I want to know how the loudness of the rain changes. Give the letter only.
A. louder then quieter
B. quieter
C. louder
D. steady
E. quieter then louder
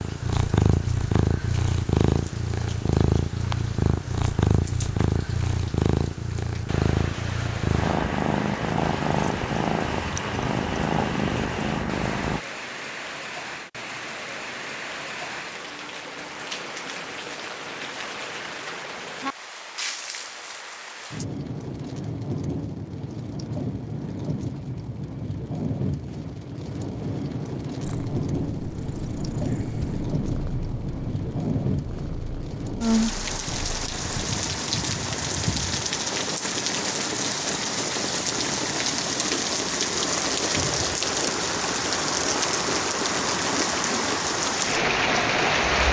C.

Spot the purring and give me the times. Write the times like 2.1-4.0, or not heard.
0.0-12.4, 27.8-34.0.